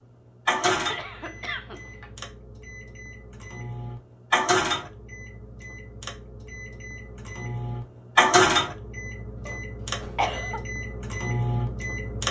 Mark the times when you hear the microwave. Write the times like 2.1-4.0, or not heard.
0.5-12.2.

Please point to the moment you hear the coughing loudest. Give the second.
10 s.